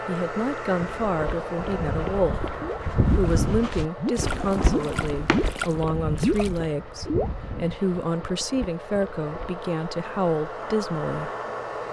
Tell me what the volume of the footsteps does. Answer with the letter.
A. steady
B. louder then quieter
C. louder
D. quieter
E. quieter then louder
B.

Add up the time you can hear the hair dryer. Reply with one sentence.
The hair dryer can be heard for 12 seconds in total.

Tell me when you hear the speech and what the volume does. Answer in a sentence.
The speech can be heard from 0.1 to 11.3 s, at a steady volume.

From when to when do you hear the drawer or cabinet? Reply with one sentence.
You can hear the drawer or cabinet from 4.2 to 5.5 s.